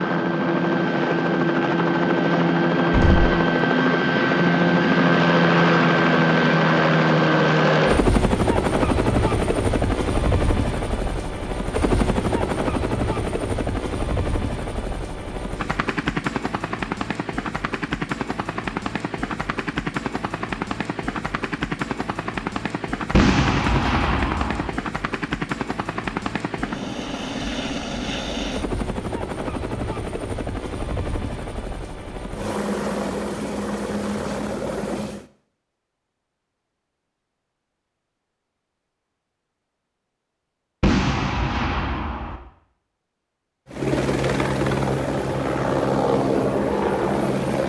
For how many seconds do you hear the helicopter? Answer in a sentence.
The helicopter can be heard for 39 seconds in total.